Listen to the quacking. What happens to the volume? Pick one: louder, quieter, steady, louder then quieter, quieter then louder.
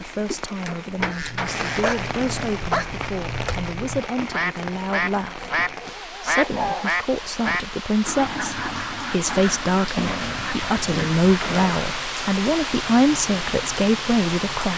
louder then quieter.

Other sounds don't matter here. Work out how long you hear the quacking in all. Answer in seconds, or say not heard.
11 s.